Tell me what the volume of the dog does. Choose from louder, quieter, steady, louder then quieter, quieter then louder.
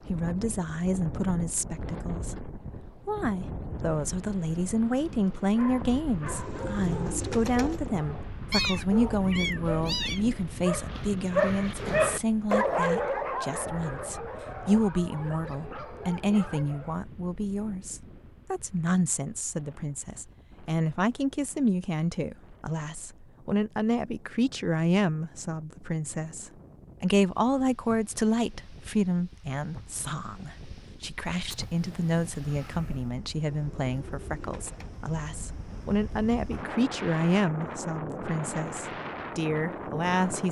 louder then quieter.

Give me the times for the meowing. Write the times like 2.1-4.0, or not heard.
8.5-10.2, 31.4-33.1.